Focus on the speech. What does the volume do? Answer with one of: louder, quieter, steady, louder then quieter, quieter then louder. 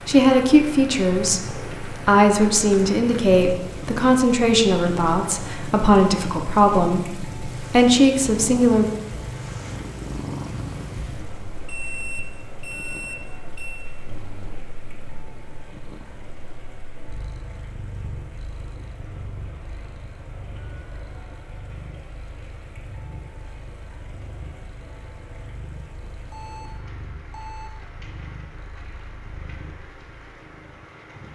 steady.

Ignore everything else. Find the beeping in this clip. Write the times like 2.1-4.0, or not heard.
11.7-13.8, 26.3-27.7.